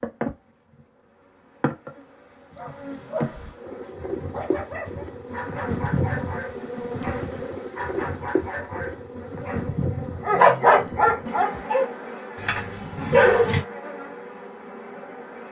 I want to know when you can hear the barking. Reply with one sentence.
You can hear the barking from 2.5 to 13.6 s.